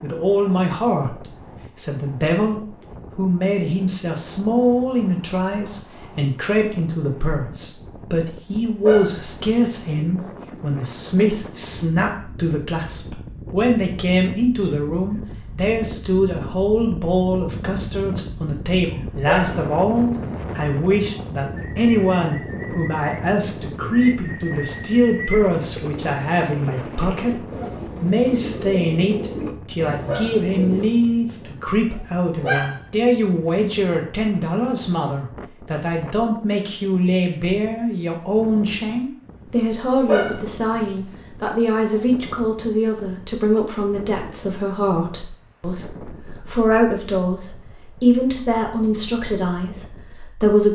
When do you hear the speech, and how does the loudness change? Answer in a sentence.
The speech can be heard from 0.0 to 50.7 s, at a steady volume.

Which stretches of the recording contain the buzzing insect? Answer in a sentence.
You can't hear the buzzing insect here.